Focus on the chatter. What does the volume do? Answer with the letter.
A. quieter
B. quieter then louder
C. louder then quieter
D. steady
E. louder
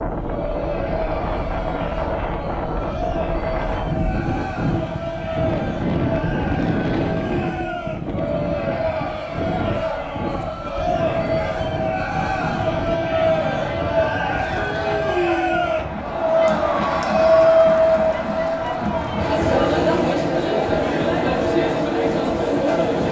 E.